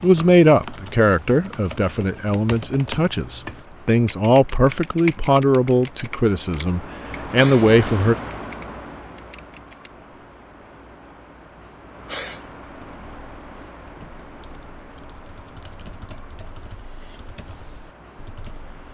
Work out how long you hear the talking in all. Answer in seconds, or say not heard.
8 s.